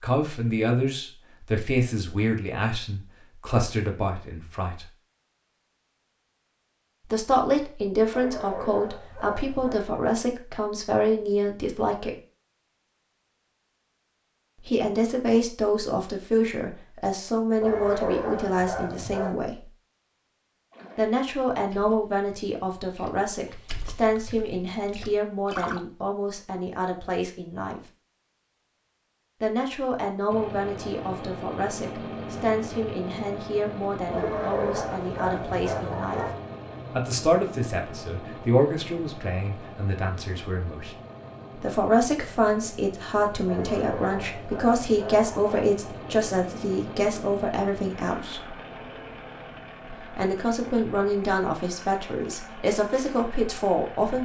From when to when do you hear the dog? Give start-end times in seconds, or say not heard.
8.1-9.9, 17.6-19.4, 34.1-36.4, 43.5-45.7.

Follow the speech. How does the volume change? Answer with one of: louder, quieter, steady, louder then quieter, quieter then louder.
steady.